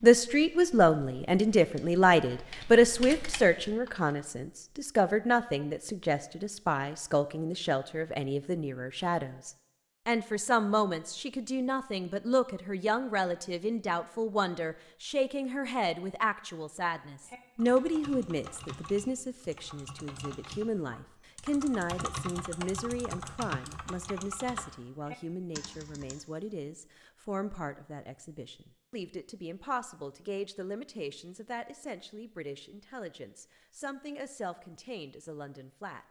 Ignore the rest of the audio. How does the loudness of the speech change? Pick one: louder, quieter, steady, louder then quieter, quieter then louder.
quieter.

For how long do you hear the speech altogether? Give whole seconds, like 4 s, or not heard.
36 s.